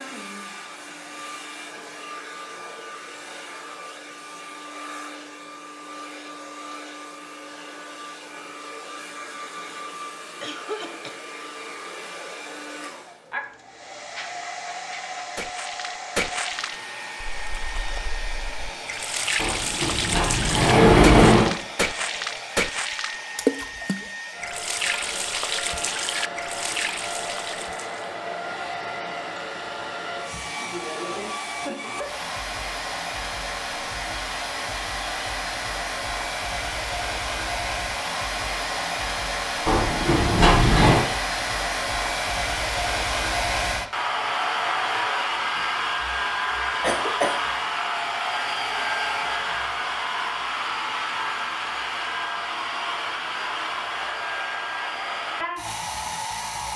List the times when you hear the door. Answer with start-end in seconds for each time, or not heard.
19.4-21.6, 39.6-41.0.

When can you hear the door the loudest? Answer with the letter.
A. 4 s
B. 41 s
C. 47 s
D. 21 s
D.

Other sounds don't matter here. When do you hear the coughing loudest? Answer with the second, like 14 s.
47 s.